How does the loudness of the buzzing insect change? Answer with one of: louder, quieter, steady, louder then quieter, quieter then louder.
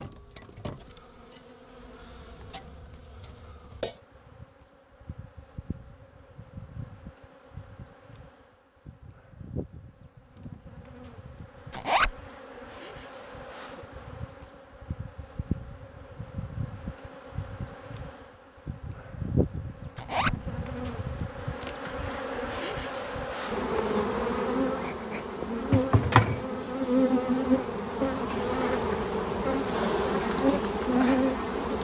louder.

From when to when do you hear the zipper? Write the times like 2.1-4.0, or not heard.
11.7-12.2, 19.9-20.4.